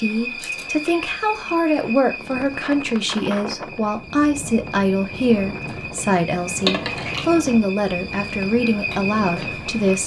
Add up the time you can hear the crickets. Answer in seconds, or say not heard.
10 s.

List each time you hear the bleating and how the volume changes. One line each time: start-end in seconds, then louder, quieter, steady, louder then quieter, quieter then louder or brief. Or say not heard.
not heard.